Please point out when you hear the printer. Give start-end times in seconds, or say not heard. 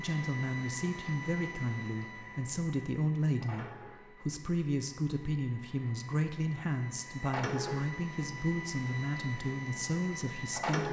0.0-10.8.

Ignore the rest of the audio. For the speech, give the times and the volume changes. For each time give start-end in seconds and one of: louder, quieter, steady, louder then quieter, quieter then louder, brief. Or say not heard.
0.0-10.8 steady.